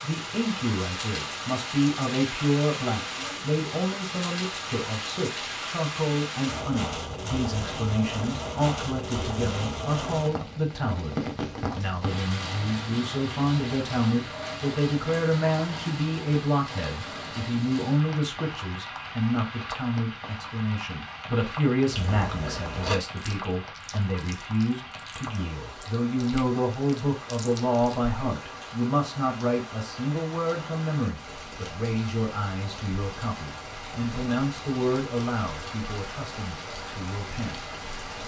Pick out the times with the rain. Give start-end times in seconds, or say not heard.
0.0-38.2.